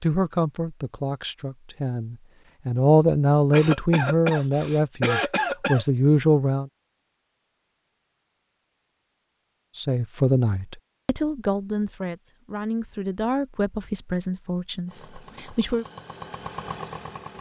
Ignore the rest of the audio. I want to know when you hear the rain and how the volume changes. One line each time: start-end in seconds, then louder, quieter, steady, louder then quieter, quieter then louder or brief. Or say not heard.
not heard.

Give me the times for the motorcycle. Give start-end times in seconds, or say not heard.
14.8-17.3.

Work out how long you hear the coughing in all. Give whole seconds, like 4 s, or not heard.
2 s.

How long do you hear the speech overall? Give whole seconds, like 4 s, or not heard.
13 s.